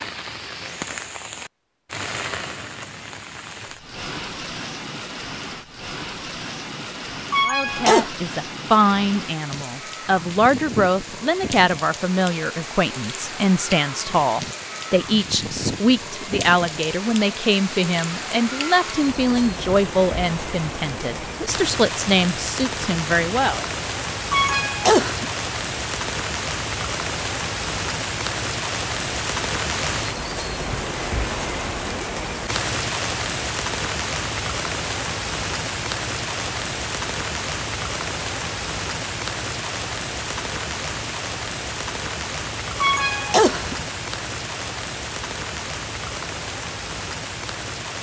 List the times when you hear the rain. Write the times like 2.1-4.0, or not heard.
0.0-47.9.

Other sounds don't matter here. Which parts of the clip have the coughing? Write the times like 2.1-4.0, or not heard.
7.3-8.1, 24.3-25.3, 42.8-43.8.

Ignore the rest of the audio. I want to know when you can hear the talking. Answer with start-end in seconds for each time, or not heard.
7.5-23.6.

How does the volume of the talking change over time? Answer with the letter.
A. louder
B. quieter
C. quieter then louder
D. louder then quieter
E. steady
E.